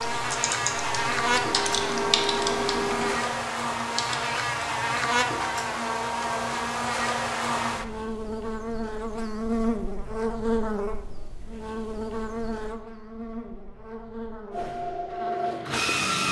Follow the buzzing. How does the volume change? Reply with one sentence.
The loudness of the buzzing goes down.